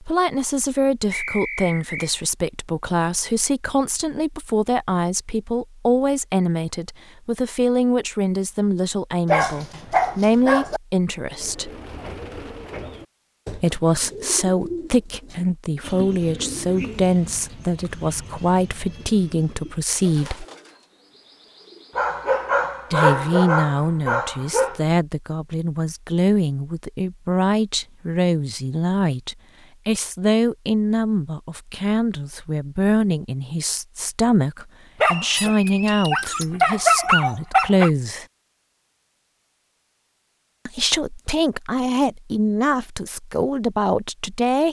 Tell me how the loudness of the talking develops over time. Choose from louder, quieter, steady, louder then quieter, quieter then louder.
steady.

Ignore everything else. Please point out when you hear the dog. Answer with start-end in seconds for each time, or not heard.
9.2-10.8, 21.9-24.8, 35.0-37.9.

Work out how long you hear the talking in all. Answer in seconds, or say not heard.
38 s.